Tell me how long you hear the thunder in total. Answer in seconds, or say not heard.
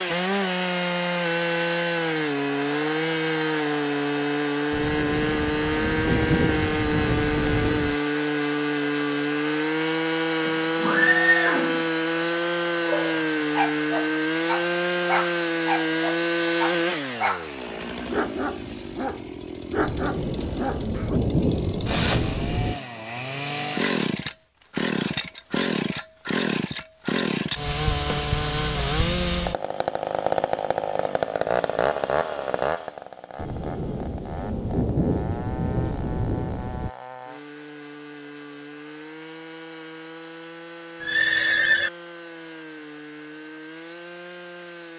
10 s.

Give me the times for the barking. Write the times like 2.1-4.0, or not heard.
12.8-21.2.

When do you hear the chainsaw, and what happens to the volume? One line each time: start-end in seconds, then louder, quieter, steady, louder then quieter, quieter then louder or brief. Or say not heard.
0.0-44.9 quieter.